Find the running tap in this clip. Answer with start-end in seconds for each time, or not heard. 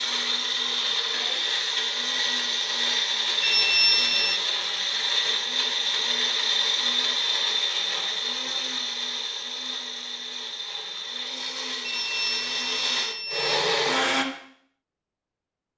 not heard.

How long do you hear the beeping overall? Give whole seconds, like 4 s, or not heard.
3 s.